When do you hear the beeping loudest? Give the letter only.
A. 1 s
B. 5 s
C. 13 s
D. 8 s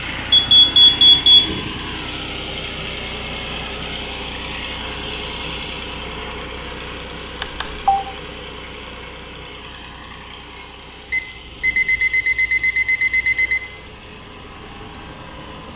A.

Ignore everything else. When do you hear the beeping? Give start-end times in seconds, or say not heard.
0.3-1.4, 7.4-8.0, 11.1-13.6.